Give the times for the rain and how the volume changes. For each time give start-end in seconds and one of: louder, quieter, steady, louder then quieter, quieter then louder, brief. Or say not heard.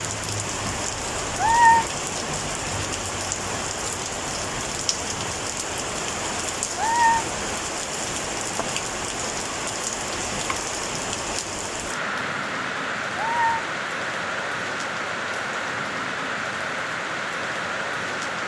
0.0-18.4 steady.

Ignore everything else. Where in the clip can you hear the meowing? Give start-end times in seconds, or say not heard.
1.4-1.9, 6.8-7.3, 13.2-13.7.